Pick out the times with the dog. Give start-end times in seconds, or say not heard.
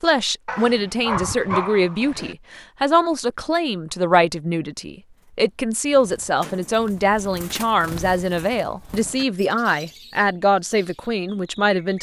0.5-2.4.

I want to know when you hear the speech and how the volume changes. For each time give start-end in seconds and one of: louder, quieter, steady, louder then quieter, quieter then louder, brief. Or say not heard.
0.0-11.9 steady.